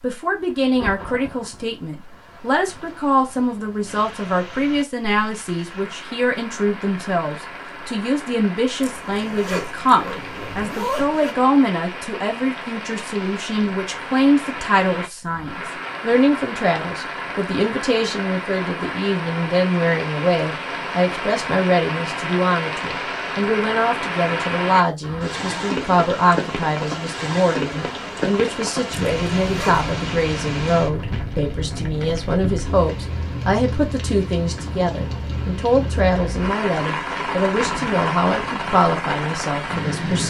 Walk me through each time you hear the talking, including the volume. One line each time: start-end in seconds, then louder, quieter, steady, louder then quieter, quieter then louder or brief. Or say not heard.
0.0-40.2 steady.